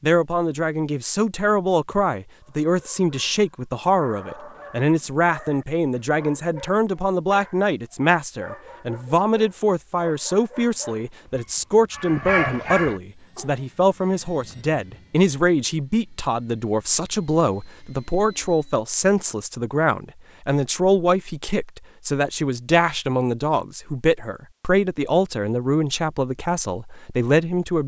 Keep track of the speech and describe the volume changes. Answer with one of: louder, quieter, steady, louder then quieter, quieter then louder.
steady.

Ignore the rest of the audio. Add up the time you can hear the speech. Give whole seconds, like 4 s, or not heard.
28 s.